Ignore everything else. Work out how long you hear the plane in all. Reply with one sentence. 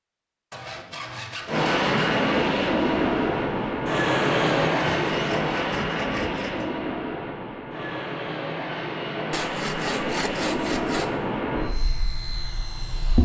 The plane can be heard for 12 seconds in total.